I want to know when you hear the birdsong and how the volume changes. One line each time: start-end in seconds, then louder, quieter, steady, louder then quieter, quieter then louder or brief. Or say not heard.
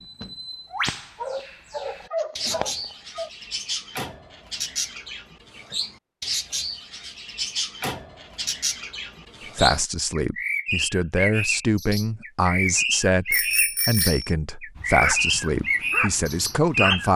0.0-17.1 louder.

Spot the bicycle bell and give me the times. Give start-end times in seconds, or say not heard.
13.3-14.3.